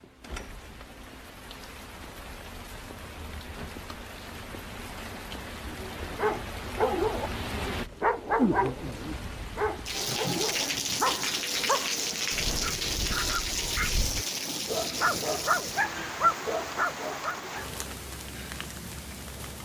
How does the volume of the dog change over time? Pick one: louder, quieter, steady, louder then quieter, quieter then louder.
quieter then louder.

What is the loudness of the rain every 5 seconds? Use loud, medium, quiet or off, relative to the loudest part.
quiet, medium, loud, medium.